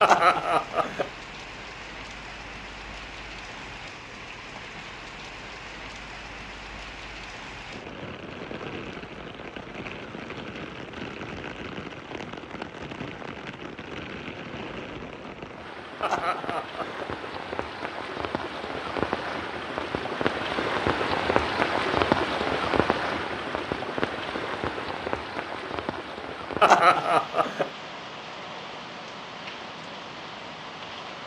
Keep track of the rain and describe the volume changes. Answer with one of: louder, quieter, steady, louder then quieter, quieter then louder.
louder then quieter.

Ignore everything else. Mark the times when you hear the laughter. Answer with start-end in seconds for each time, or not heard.
0.0-1.1, 16.0-17.1, 26.6-27.7.